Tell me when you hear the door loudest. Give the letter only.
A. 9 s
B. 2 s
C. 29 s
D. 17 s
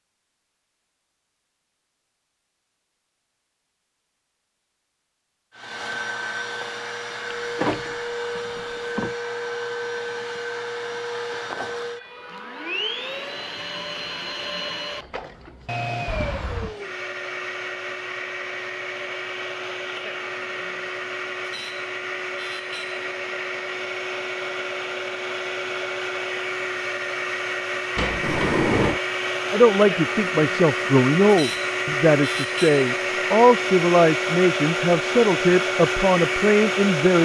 C.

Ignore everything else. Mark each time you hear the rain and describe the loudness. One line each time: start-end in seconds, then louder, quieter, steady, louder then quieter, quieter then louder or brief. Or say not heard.
not heard.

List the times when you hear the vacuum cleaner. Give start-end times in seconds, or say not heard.
5.5-37.2.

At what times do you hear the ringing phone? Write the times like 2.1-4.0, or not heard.
not heard.